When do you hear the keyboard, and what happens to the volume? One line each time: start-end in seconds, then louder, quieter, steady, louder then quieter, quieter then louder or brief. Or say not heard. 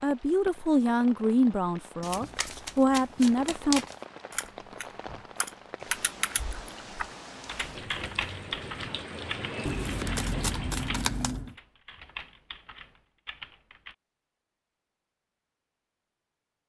4.3-13.9 quieter.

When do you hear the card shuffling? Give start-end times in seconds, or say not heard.
2.0-4.0, 9.7-11.6.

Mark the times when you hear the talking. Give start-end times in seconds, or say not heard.
0.0-3.9.